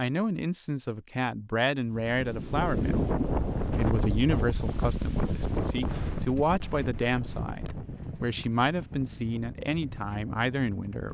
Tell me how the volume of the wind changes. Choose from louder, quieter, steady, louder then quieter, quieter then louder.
quieter.